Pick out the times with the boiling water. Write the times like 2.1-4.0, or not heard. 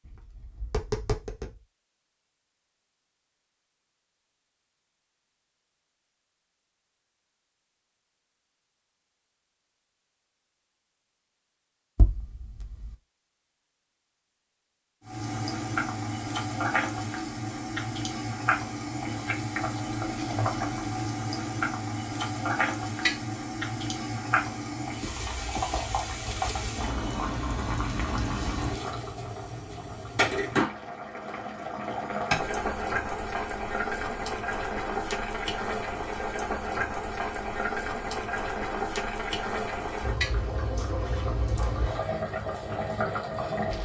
15.1-43.8.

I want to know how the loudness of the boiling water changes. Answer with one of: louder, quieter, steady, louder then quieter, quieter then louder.
steady.